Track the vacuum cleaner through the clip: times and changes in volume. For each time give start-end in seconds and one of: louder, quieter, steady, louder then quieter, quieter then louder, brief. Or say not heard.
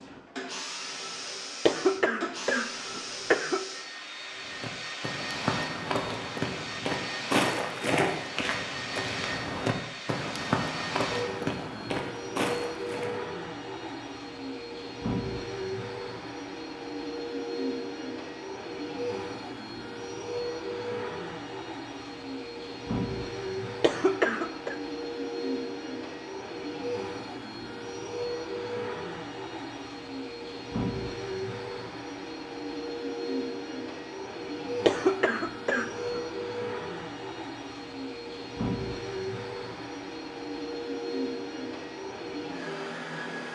0.0-43.5 steady.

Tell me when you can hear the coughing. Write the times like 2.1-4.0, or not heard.
1.6-3.6, 23.8-24.8, 34.9-36.2.